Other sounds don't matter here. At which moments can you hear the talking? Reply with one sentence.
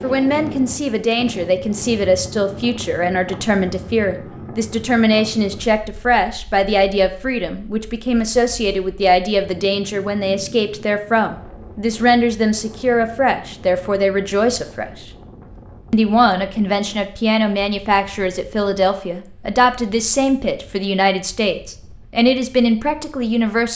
The talking can be heard from 0.0 to 15.1 s and from 15.9 to 23.7 s.